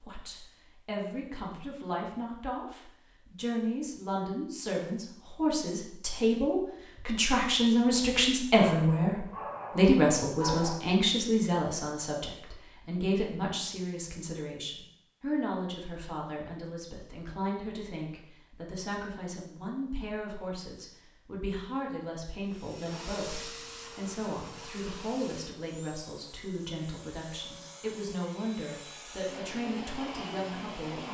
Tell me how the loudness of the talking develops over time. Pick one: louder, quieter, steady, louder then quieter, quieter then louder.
louder then quieter.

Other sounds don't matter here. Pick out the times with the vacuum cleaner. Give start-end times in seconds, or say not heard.
22.4-31.0.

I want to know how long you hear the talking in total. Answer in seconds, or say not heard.
31 s.